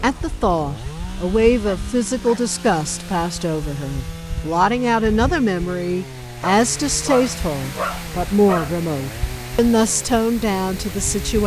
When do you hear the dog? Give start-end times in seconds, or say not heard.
1.6-2.5, 6.4-8.8.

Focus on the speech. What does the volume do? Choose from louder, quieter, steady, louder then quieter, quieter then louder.
steady.